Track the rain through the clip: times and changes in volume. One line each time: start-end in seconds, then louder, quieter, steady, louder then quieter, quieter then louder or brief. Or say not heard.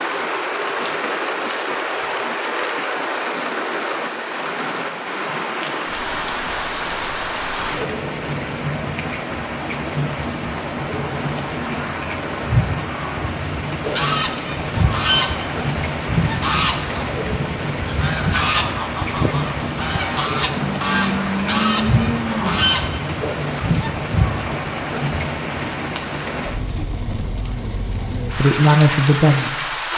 0.0-29.9 steady.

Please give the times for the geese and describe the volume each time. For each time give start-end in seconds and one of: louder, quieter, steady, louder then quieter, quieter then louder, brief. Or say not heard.
13.8-23.9 steady.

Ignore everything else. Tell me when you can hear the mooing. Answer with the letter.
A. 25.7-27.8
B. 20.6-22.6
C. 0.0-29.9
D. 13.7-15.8
B.